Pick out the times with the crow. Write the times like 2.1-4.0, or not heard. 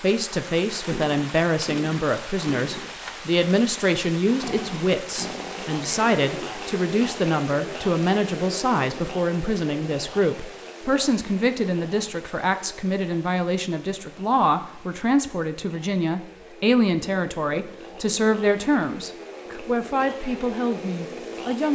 not heard.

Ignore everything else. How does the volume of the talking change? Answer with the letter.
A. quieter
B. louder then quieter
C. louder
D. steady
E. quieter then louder
D.